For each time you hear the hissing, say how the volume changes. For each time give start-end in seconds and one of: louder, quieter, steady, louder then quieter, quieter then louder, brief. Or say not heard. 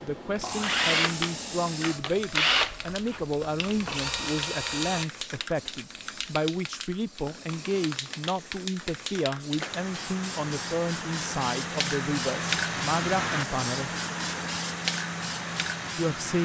0.0-16.4 louder.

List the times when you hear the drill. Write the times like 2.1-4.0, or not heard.
0.3-5.0.